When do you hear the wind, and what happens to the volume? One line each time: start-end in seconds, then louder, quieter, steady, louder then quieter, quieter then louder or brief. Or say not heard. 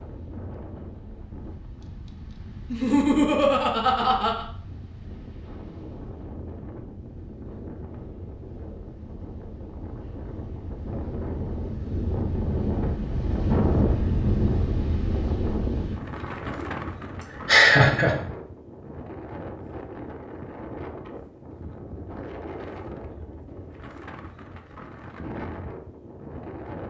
0.0-26.8 louder then quieter.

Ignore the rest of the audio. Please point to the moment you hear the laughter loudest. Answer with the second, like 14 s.
18 s.